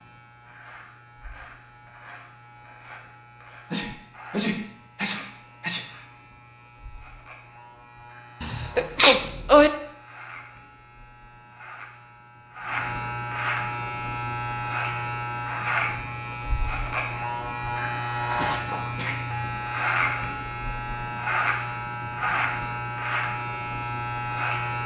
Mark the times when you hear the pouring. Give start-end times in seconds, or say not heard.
not heard.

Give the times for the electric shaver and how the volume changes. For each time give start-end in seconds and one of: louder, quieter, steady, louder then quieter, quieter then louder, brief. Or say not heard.
0.0-24.8 louder.